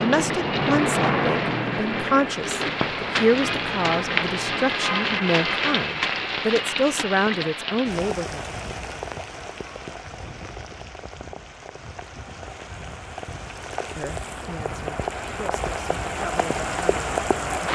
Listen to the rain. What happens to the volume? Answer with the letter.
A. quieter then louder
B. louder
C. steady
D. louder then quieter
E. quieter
A.